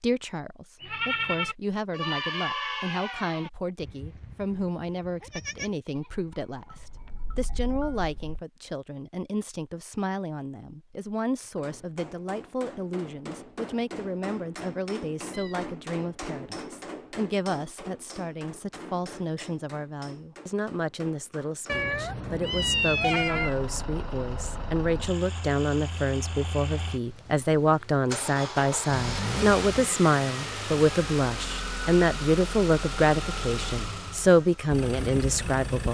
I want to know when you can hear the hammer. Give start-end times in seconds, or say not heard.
11.4-22.4.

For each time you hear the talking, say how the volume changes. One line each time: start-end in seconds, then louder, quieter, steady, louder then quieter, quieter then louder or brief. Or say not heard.
0.0-35.8 louder.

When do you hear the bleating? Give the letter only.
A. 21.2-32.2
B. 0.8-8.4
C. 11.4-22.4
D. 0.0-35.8
B.